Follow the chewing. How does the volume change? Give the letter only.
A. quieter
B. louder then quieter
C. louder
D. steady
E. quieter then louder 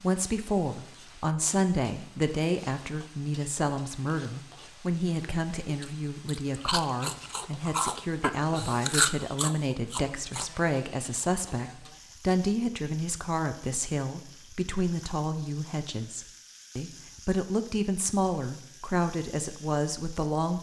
B.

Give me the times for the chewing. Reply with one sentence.
You can hear the chewing from 5.2 to 10.5 s.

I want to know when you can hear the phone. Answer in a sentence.
You can't hear the phone here.